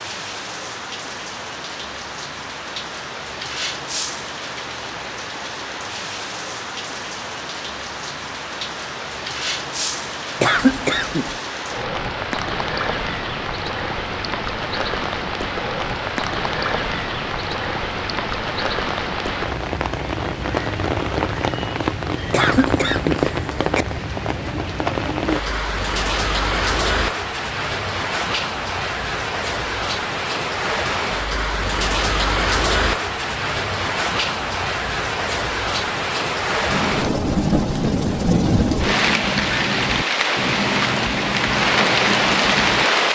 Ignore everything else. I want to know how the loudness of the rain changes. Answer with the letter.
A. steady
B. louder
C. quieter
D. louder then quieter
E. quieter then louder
B.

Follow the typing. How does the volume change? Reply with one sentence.
The loudness of the typing stays about the same.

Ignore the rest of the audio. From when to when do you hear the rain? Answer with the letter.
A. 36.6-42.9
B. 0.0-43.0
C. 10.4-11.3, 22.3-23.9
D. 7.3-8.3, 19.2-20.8
B.